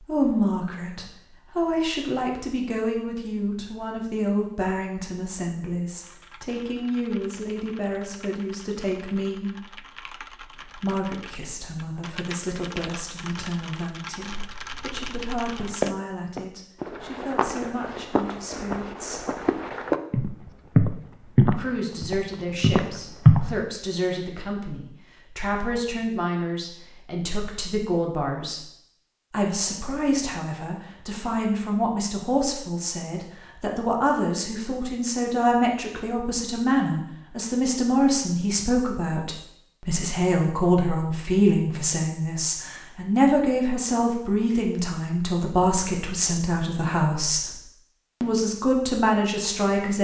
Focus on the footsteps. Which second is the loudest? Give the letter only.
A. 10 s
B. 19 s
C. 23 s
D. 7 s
C.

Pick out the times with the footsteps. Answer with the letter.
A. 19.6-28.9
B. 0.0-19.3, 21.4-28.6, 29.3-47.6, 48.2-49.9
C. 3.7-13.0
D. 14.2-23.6
D.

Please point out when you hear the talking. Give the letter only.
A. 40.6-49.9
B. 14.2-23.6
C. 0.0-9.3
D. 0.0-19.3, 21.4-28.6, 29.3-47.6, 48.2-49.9
D.